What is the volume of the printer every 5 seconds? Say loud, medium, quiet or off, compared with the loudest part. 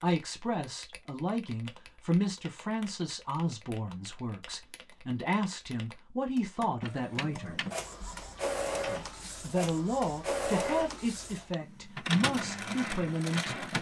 off, loud, loud.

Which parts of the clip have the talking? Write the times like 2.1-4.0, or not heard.
0.0-7.7, 8.8-13.7.